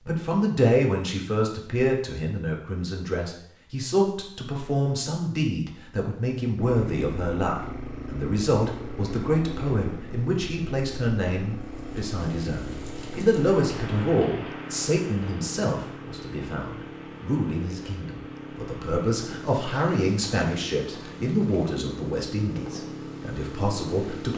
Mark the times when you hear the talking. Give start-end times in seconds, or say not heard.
0.0-24.3.